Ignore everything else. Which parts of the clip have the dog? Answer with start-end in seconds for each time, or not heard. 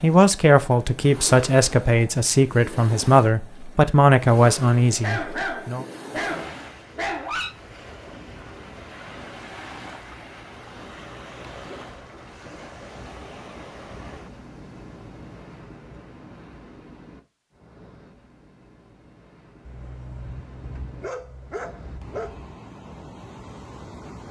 5.0-7.5, 19.6-22.5.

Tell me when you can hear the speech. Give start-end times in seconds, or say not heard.
0.0-5.8.